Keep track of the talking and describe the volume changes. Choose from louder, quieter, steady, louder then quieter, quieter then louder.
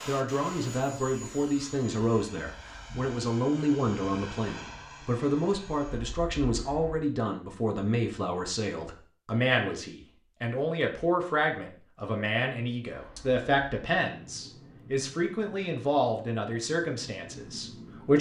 steady.